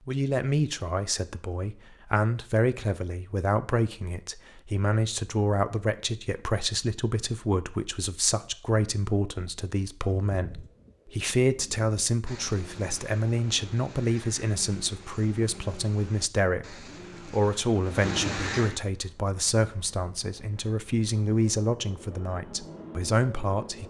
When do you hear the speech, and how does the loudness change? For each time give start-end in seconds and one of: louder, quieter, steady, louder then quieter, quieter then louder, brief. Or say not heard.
0.1-23.8 steady.